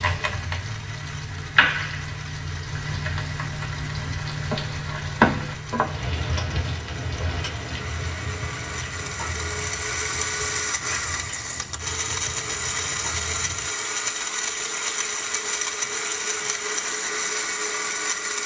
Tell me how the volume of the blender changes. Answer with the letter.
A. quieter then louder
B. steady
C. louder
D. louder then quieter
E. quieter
C.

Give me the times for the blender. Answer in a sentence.
You can hear the blender from 0.0 to 18.4 s.